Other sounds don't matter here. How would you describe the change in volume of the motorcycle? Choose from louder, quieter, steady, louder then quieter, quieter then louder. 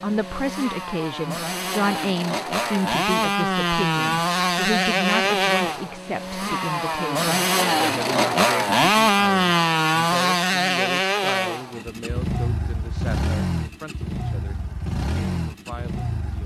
louder then quieter.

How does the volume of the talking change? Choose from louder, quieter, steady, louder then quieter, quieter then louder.
quieter.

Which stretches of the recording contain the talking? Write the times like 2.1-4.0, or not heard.
0.0-16.4.